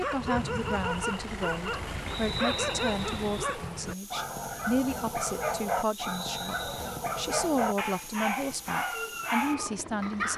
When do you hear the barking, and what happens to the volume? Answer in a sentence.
The barking can be heard from 0.0 to 10.3 s, at a steady volume.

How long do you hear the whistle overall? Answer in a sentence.
The whistle can be heard for 2 seconds in total.